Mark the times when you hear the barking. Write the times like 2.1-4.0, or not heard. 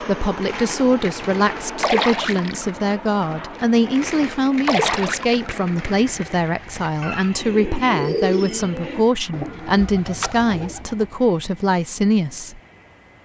not heard.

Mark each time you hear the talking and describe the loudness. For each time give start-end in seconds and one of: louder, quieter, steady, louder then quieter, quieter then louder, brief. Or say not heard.
0.0-12.6 steady.